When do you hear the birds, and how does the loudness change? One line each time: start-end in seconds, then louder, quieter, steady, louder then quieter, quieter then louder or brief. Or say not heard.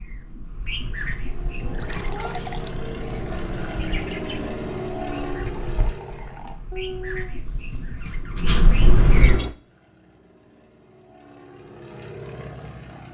0.0-9.3 quieter then louder.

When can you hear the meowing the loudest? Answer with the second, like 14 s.
7 s.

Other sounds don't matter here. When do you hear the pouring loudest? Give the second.
9 s.